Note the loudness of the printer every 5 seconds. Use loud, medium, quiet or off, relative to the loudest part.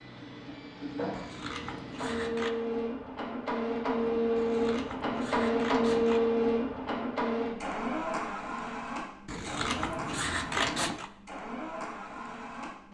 loud, loud, medium.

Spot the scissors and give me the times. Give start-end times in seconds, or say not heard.
1.1-2.5, 4.3-6.2, 9.2-11.1.